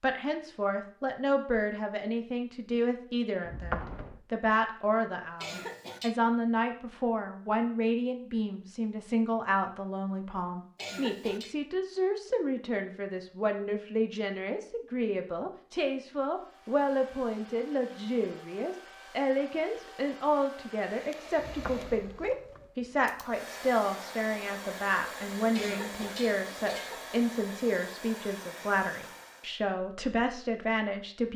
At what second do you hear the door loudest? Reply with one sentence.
The loudest moment of the door is at 4 seconds.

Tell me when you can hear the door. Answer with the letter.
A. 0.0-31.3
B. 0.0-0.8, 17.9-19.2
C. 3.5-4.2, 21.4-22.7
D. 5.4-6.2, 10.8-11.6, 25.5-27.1
C.